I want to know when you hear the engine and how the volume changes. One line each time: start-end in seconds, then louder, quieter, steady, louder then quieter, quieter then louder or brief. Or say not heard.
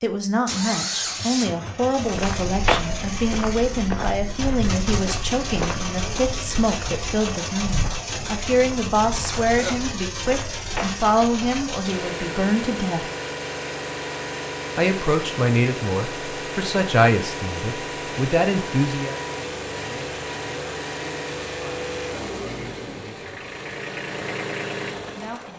0.5-25.5 steady.